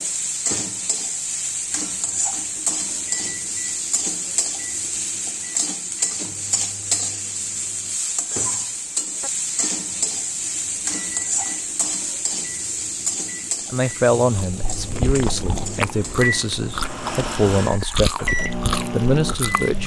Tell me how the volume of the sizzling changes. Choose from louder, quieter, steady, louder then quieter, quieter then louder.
quieter.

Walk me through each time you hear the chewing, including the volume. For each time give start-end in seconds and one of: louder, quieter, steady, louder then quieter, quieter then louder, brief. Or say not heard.
14.3-19.8 steady.